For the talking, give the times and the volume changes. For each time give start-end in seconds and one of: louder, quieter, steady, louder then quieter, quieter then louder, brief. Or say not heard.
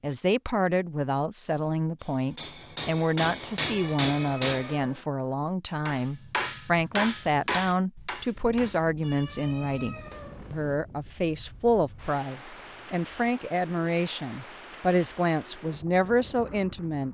0.0-17.0 steady.